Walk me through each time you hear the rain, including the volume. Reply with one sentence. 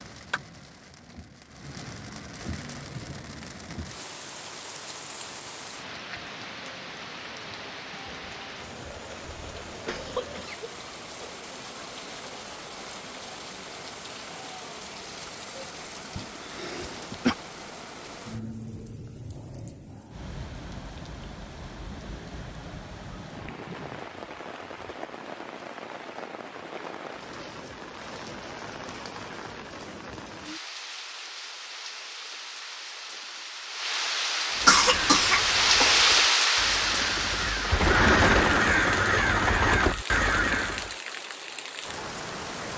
The rain can be heard from 0.0 to 42.7 s, getting louder.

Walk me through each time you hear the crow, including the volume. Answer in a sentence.
You can hear the crow from 34.5 to 41.0 s, getting louder.